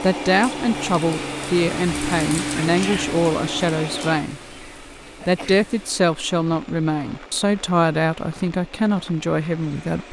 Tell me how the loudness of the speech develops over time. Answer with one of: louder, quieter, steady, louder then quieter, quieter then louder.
steady.